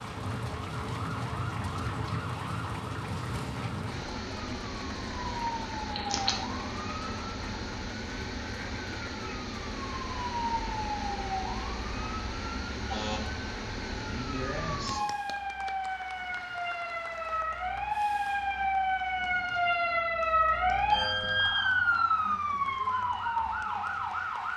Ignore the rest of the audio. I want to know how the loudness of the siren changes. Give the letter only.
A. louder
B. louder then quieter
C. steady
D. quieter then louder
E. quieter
A.